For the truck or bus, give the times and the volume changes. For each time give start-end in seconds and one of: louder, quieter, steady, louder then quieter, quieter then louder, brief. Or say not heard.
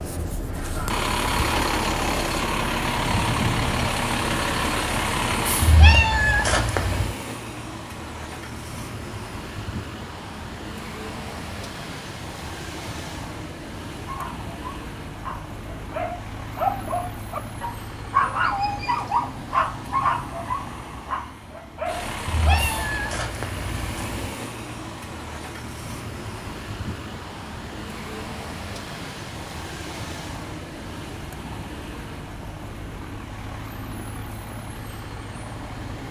0.0-36.0 quieter.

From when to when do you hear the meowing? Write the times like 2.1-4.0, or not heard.
5.6-7.2, 22.2-24.3.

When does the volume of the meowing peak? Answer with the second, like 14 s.
6 s.